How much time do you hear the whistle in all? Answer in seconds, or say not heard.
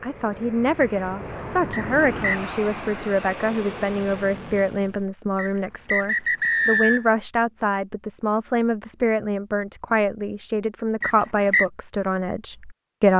3 s.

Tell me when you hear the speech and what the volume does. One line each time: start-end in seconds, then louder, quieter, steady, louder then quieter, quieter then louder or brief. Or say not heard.
0.0-13.1 steady.